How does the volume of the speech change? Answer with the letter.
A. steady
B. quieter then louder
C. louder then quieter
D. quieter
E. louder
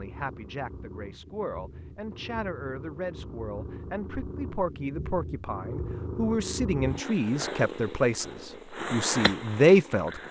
E.